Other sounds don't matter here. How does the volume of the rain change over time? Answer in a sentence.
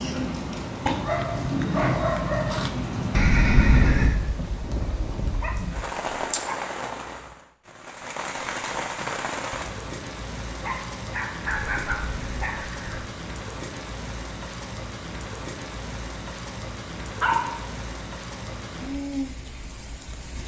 The loudness of the rain goes down.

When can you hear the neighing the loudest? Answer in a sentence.
The volume of the neighing peaks at 4 seconds.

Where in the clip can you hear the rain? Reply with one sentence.
The rain can be heard from 0.0 to 20.4 s.